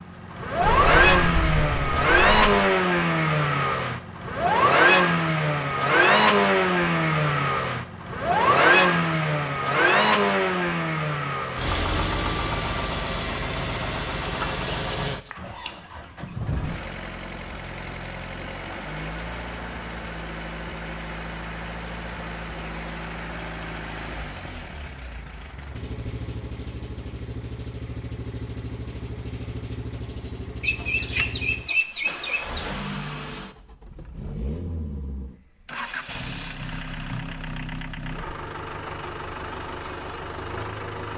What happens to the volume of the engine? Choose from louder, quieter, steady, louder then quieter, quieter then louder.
quieter.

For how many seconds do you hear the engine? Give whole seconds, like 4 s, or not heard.
41 s.